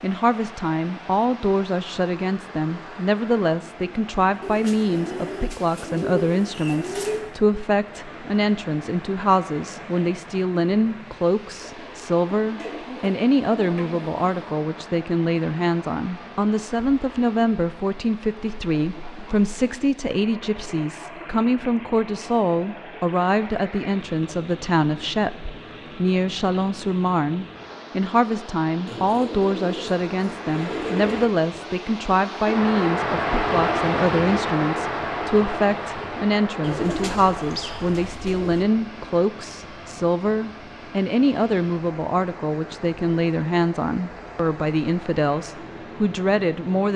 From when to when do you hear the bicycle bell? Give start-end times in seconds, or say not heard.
not heard.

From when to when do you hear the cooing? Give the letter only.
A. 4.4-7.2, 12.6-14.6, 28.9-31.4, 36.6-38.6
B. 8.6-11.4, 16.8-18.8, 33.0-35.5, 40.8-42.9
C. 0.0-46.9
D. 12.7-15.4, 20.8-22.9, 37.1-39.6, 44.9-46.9
A.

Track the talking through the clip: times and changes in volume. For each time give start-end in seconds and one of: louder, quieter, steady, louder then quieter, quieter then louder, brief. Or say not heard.
0.0-46.9 steady.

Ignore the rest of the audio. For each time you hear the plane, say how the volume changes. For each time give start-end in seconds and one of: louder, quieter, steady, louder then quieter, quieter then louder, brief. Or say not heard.
not heard.